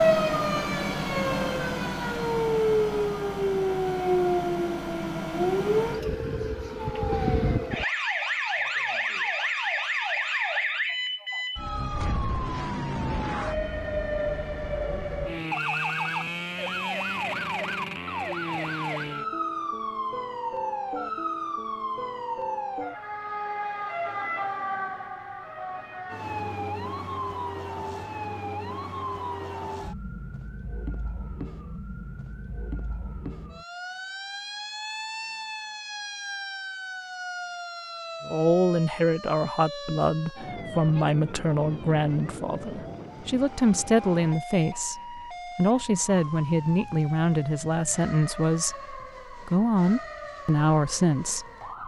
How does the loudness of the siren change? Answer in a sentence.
The loudness of the siren goes down.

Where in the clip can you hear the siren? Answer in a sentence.
The siren can be heard from 0.0 to 51.8 s.